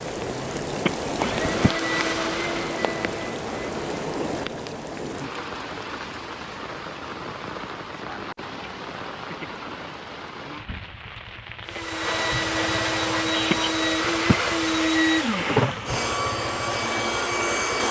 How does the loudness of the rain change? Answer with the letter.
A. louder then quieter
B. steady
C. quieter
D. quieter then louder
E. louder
C.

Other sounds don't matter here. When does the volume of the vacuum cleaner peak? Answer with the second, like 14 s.
15 s.